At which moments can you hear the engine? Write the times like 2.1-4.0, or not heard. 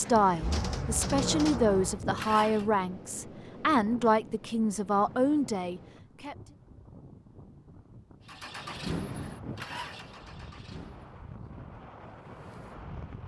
0.0-2.6, 8.2-11.2.